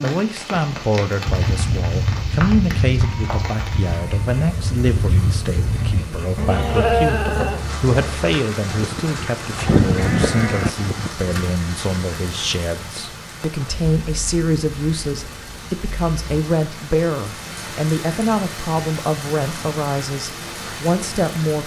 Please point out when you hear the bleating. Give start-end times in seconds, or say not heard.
1.2-11.2.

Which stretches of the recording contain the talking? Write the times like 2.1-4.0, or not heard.
0.0-21.6.